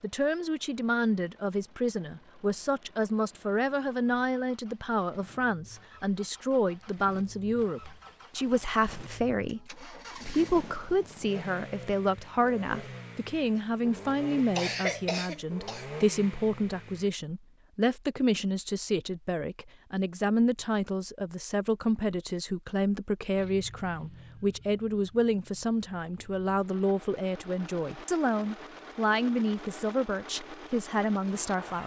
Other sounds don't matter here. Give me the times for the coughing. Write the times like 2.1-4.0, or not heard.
14.6-15.8.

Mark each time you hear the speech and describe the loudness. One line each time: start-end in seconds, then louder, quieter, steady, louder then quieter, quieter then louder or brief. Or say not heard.
0.0-31.8 steady.